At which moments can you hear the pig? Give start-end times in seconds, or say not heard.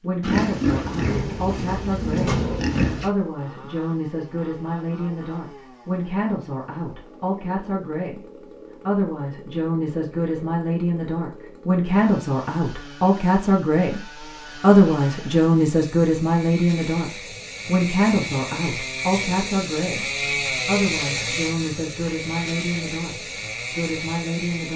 0.2-3.1.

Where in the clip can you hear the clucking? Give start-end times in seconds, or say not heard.
not heard.